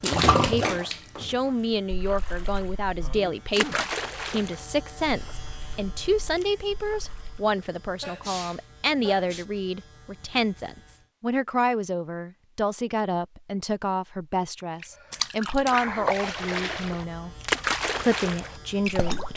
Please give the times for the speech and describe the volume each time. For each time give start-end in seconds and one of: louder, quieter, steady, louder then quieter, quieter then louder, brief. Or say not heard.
0.0-17.4 steady
18.0-19.3 brief.